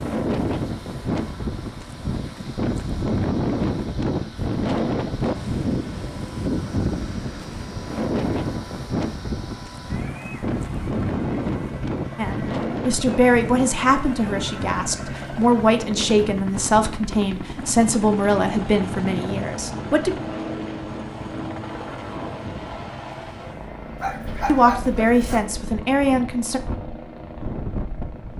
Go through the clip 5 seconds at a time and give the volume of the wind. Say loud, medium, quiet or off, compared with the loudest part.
loud, loud, loud, medium, quiet, medium.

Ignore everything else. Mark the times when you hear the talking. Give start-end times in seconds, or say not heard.
12.2-20.1, 24.4-26.6.